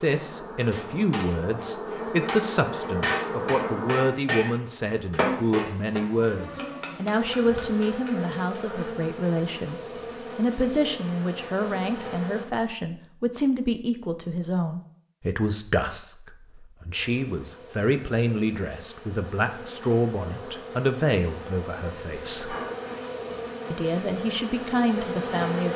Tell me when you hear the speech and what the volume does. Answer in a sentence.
The speech can be heard from 0.0 to 22.6 s, at a steady volume; and briefly from 23.7 to 25.7 s.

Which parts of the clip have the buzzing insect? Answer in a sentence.
You can hear the buzzing insect from 0.0 to 12.4 s and from 16.9 to 25.7 s.